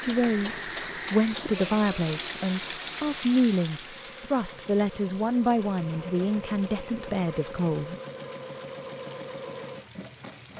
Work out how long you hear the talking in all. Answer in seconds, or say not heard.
8 s.